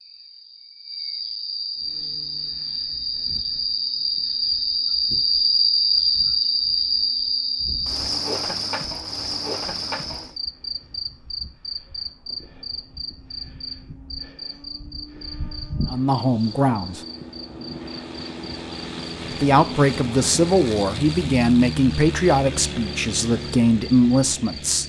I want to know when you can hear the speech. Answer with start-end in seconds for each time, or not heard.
15.9-17.0, 19.3-24.8.